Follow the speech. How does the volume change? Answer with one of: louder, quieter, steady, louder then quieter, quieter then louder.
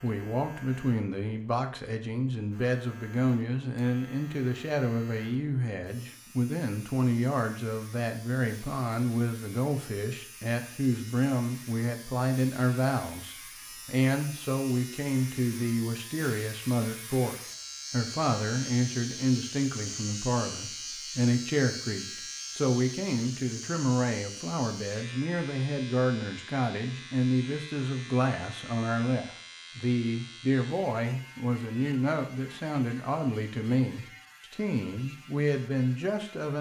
steady.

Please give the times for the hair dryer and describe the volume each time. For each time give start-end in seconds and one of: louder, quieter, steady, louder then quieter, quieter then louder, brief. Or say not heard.
not heard.